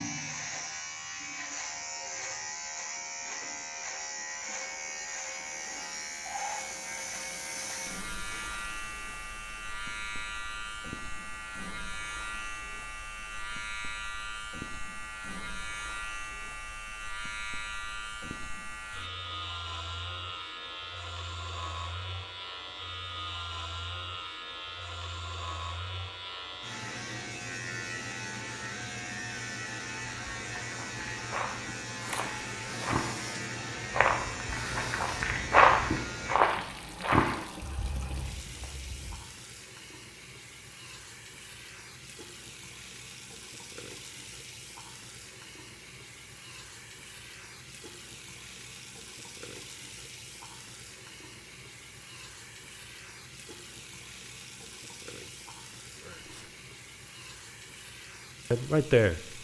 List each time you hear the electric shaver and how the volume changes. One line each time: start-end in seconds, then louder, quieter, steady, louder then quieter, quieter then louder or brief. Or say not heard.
0.0-36.4 steady.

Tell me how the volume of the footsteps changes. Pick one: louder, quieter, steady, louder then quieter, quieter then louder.
louder then quieter.